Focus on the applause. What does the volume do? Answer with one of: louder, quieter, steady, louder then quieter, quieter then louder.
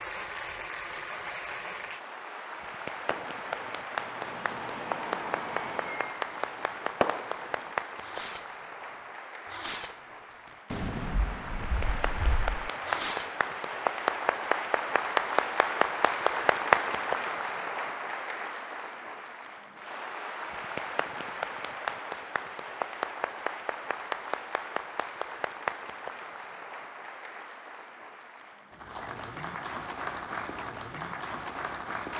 louder then quieter.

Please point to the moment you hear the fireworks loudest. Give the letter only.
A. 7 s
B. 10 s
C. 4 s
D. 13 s
A.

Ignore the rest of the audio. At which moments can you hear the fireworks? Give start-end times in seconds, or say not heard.
3.1-8.7, 9.4-13.4.